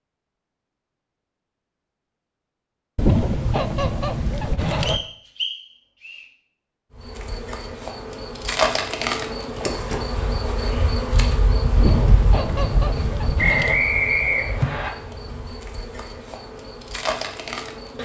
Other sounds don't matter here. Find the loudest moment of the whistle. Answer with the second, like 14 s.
14 s.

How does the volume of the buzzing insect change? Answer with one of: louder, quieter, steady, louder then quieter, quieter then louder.
quieter.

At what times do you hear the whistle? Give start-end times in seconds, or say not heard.
4.8-6.2, 13.3-14.9.